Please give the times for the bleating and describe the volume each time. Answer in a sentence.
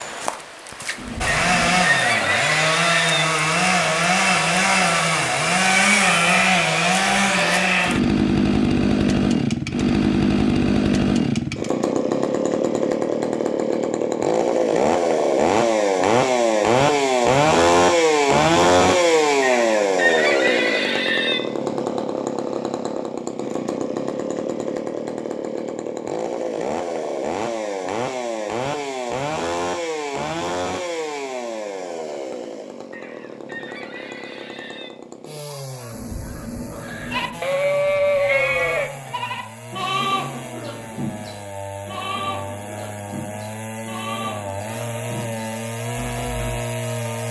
You can hear the bleating from 37.1 to 46.6 s, getting quieter.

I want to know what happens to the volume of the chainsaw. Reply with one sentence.
The volume of the chainsaw goes down.